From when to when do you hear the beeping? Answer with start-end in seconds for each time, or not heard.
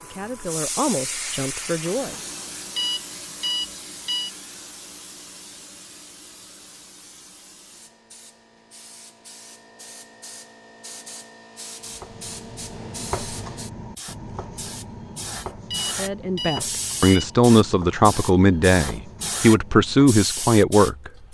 2.8-4.3, 15.7-17.3.